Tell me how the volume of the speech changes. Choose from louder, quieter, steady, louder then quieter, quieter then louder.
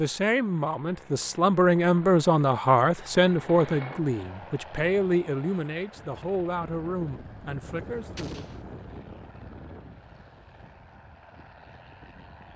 quieter.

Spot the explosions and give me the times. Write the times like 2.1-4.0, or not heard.
8.2-8.7.